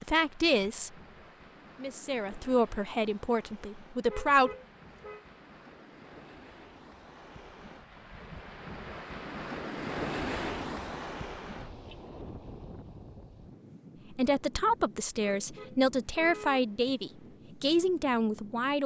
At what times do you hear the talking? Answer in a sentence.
You can hear the talking from 0.0 to 1.0 s, from 1.8 to 4.5 s and from 14.1 to 18.8 s.